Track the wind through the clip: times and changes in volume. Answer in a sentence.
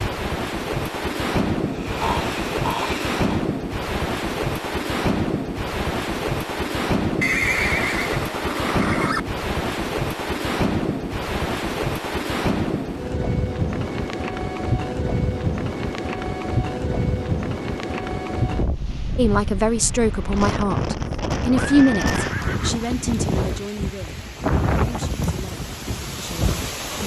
You can hear the wind from 0.0 to 27.0 s, at a steady volume.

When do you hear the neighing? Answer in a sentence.
You can hear the neighing from 7.2 to 9.2 s and from 21.6 to 22.9 s.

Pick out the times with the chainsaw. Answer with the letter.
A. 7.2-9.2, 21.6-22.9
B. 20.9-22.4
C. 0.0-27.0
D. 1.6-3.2
D.